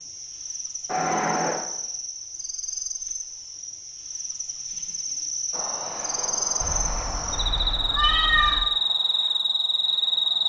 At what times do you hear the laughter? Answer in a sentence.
The laughter can't be heard in this clip.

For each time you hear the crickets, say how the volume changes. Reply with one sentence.
The crickets can be heard from 0.0 to 10.4 s, getting louder.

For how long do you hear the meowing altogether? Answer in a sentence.
You can hear the meowing for 3 seconds altogether.